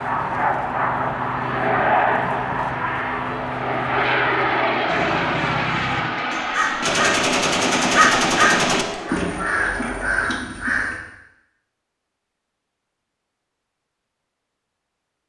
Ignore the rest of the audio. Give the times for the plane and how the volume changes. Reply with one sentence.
The plane can be heard from 0.0 to 10.4 s, getting quieter.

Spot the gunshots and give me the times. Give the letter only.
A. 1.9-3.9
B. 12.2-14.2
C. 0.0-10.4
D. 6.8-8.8
D.